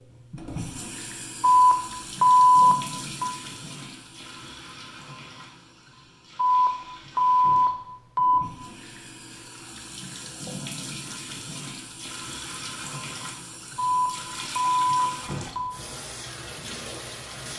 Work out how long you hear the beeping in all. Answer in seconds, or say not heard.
6 s.